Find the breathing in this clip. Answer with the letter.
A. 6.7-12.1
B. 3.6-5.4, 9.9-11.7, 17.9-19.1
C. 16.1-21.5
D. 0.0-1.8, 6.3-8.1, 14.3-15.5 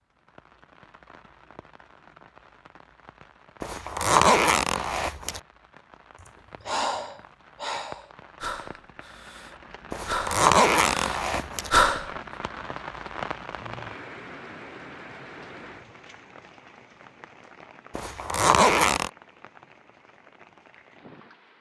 A.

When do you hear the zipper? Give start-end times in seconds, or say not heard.
3.6-5.4, 9.9-11.7, 17.9-19.1.